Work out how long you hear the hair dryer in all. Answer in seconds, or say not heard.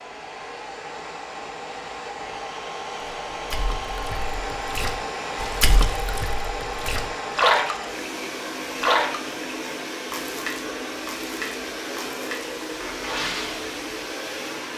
15 s.